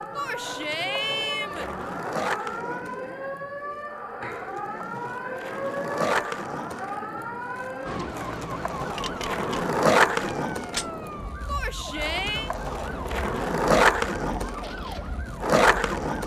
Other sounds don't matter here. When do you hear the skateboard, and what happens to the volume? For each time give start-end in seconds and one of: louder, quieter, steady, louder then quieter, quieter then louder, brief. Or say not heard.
0.0-16.2 louder.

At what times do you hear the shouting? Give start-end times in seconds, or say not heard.
0.1-1.7, 11.4-12.5.